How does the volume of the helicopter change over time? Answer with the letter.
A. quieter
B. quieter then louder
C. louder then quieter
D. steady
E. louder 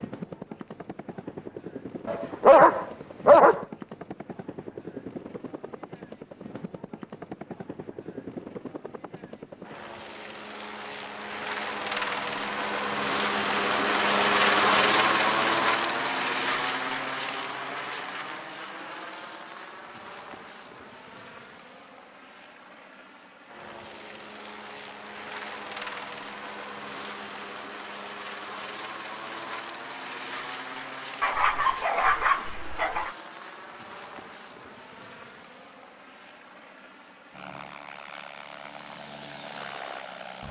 C.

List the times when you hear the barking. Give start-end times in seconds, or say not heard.
2.0-3.6, 31.2-33.1.